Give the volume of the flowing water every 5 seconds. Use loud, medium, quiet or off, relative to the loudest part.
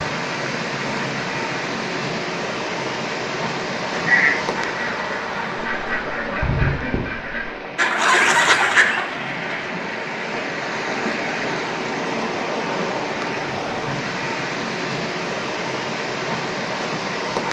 loud, medium, loud, loud.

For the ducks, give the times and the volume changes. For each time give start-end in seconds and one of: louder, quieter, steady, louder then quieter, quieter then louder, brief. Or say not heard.
3.9-9.7 louder.